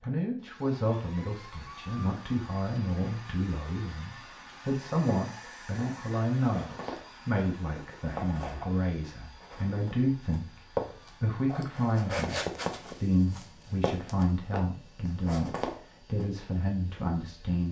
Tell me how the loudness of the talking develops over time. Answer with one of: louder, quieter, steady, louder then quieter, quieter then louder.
steady.